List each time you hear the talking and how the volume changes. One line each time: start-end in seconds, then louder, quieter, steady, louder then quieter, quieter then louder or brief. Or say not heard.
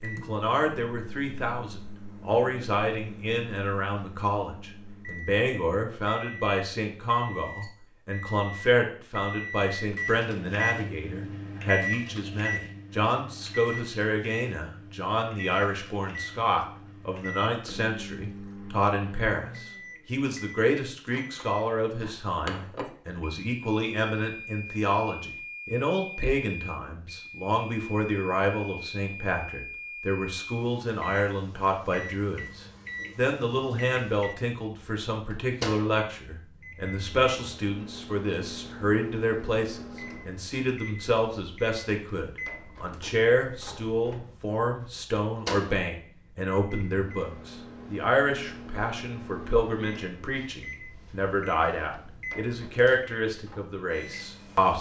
0.0-54.7 steady.